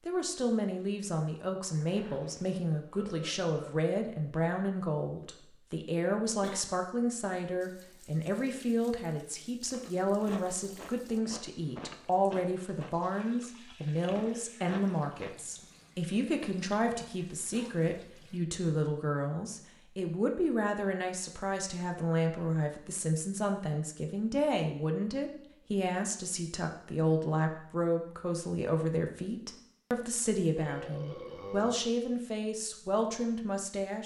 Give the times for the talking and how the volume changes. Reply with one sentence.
You can hear the talking from 0.1 to 34.0 s, at a steady volume.